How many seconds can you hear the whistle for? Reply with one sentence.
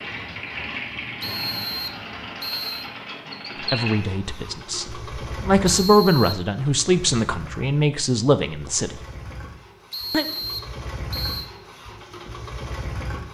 The whistle can be heard for 4 seconds in total.